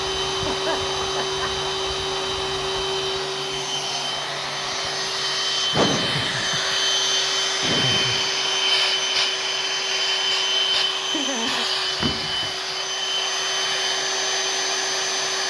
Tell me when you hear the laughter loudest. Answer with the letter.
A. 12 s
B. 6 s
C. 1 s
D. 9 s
B.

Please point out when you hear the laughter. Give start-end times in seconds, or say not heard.
0.3-1.6, 5.7-6.8, 7.6-8.3, 11.1-11.7.